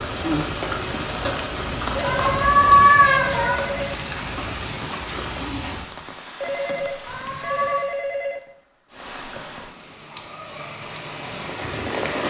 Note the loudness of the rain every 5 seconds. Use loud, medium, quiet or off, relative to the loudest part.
loud, medium, loud.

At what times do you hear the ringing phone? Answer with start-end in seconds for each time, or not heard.
1.9-4.0, 6.4-8.4.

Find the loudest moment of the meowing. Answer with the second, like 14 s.
3 s.